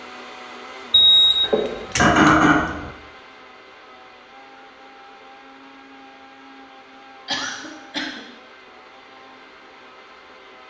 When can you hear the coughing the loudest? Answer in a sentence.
The volume of the coughing peaks at 2 seconds.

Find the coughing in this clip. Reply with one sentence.
You can hear the coughing from 1.4 to 2.5 s and from 7.2 to 8.2 s.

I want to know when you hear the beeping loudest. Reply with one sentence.
The loudest moment of the beeping is at 1 second.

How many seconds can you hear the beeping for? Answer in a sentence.
You can hear the beeping for 2 seconds altogether.